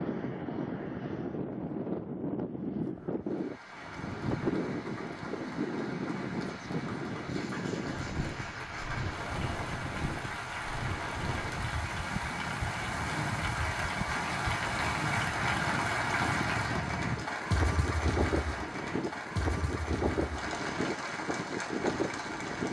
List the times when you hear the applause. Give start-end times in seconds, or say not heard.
3.2-22.6.